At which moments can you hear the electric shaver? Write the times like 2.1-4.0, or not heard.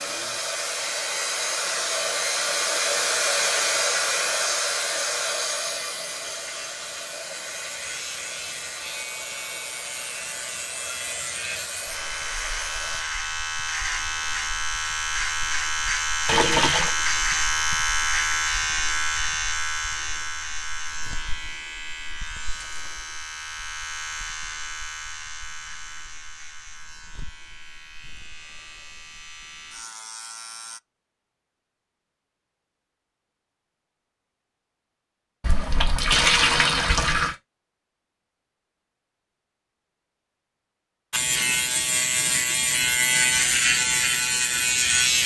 0.0-30.8, 41.1-45.2.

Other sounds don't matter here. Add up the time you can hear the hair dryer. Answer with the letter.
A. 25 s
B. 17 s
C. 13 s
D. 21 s
C.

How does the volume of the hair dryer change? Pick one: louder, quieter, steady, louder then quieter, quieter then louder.
quieter.